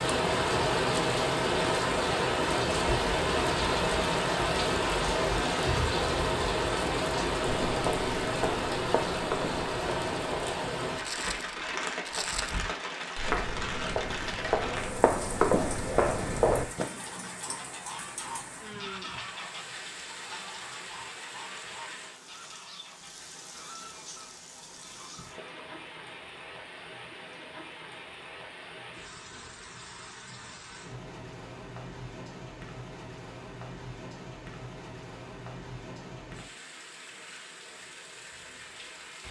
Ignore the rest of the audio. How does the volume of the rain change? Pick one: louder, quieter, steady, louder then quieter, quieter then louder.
quieter.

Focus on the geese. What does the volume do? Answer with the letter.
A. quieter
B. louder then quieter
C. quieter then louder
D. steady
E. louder
A.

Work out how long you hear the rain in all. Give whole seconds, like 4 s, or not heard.
39 s.